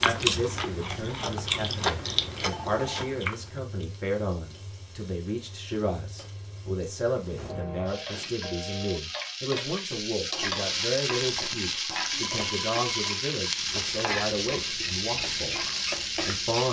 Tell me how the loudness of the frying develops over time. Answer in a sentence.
The volume of the frying goes up.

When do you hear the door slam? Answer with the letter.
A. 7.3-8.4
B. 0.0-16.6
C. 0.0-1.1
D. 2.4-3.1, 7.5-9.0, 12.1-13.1
A.